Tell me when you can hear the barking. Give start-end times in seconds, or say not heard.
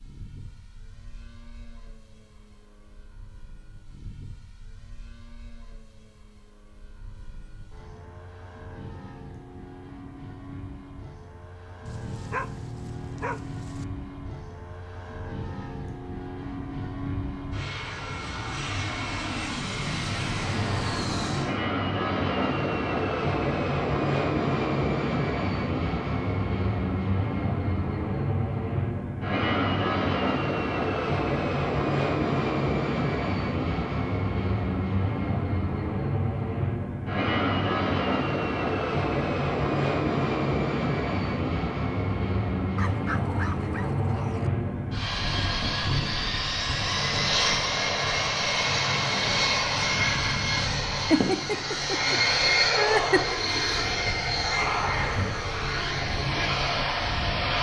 11.8-13.8, 42.8-44.5.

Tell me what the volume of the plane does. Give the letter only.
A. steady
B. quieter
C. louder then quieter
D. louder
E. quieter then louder
D.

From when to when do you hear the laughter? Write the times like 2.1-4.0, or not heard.
51.1-53.4.